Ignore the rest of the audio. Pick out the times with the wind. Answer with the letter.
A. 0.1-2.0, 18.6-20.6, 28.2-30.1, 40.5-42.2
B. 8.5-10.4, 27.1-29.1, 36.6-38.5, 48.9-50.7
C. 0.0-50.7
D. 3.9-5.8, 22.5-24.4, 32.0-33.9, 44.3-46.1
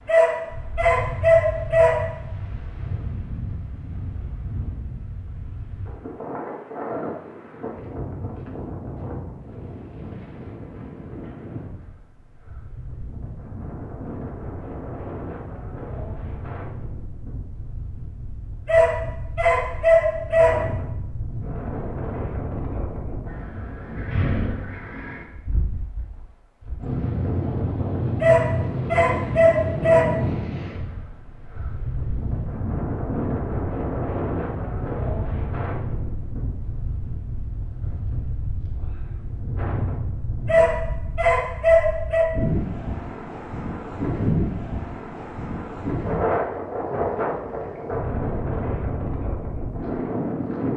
C.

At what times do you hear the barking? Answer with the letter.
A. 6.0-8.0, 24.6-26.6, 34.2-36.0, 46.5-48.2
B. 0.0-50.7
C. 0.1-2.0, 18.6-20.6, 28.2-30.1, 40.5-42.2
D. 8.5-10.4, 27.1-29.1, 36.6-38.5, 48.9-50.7
C.